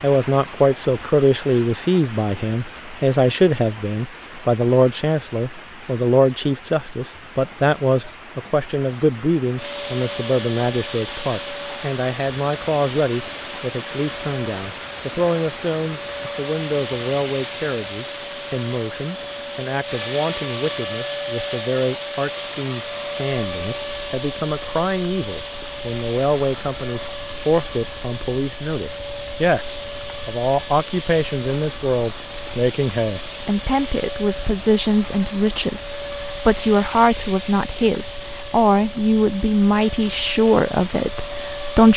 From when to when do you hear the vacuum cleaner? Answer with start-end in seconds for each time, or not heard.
9.6-41.9.